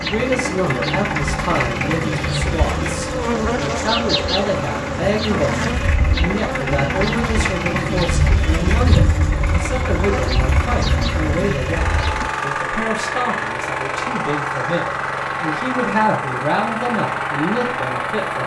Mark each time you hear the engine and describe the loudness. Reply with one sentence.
The engine can be heard from 0.0 to 18.4 s, at a steady volume.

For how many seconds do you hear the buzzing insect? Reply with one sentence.
You can hear the buzzing insect for 12 seconds altogether.